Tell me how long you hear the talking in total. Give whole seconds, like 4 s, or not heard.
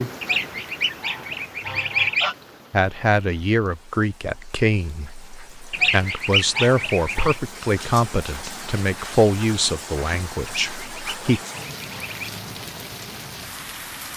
9 s.